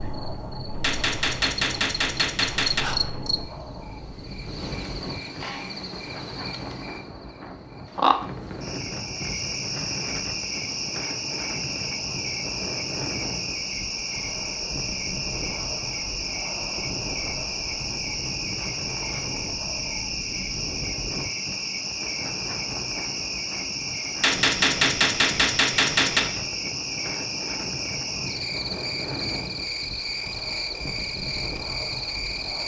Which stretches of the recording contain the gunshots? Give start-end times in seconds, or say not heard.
0.8-2.9, 24.2-26.2.